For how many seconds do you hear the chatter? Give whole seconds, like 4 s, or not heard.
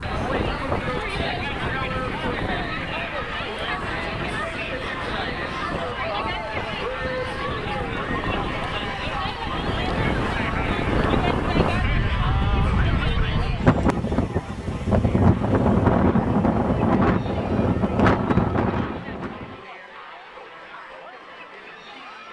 22 s.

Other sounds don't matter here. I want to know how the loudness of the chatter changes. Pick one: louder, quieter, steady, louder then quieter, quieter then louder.
quieter.